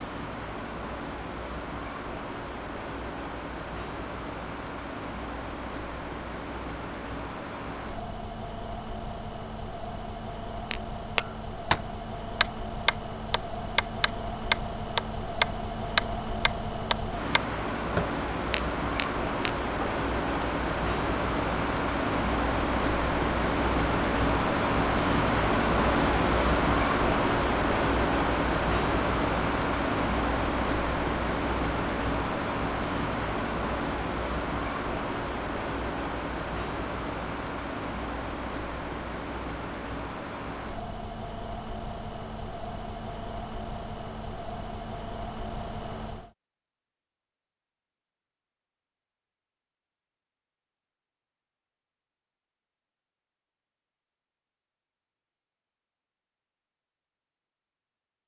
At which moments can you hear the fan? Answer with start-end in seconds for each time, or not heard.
0.0-46.4.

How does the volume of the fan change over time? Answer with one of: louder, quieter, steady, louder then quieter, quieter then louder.
louder then quieter.